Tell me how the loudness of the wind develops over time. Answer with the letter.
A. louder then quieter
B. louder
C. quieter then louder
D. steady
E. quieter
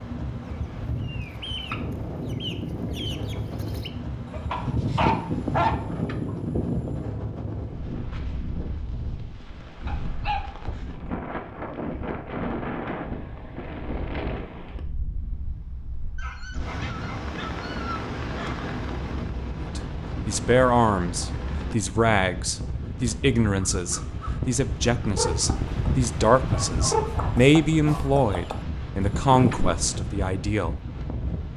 D.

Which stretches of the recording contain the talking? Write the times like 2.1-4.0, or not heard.
19.8-30.8.